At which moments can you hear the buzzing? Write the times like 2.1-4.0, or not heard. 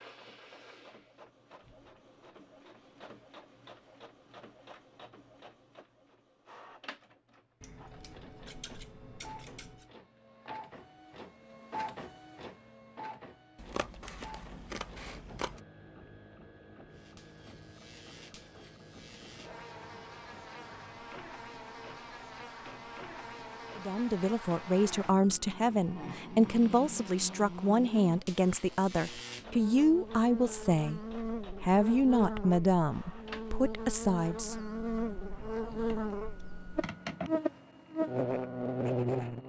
16.9-39.4.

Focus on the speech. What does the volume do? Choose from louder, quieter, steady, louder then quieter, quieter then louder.
steady.